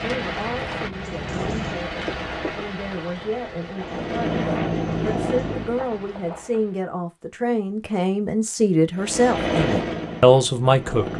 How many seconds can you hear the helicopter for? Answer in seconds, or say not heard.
7 s.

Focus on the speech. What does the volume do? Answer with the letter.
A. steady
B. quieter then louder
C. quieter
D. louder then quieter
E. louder
E.